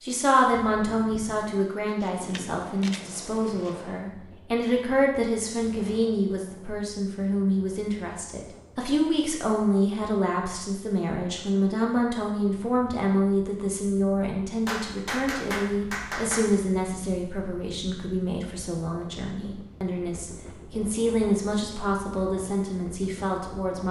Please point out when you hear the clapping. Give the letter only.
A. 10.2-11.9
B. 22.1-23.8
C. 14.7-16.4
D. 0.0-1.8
C.